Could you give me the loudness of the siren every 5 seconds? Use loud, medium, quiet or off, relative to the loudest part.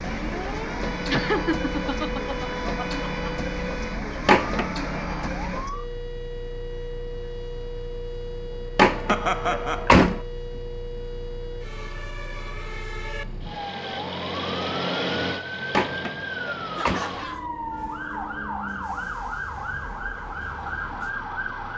loud, medium, medium, loud, loud.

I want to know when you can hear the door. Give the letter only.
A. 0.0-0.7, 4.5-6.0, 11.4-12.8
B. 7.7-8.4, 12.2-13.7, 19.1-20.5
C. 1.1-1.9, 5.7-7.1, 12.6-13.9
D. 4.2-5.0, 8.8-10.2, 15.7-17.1
D.